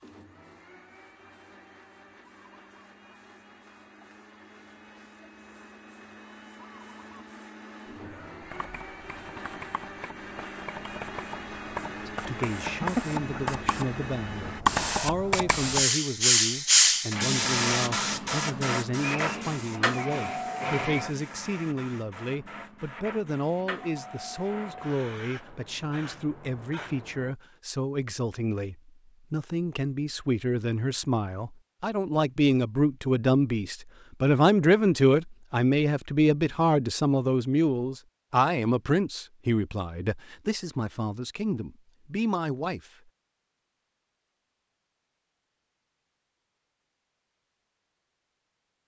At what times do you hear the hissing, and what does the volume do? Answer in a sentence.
You can hear the hissing from 0.0 to 27.4 s, getting louder then quieter.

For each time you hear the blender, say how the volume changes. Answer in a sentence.
The blender can be heard from 0.0 to 14.7 s, getting louder; and briefly from 19.0 to 21.1 s.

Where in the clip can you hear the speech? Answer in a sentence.
The speech can be heard from 12.1 to 42.9 s.